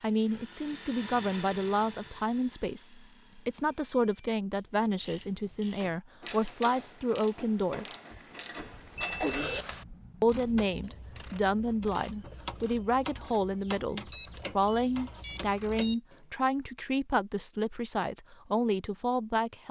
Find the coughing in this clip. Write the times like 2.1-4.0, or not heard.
8.1-9.7.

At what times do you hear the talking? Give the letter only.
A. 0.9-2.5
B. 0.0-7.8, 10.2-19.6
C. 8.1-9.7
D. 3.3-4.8
B.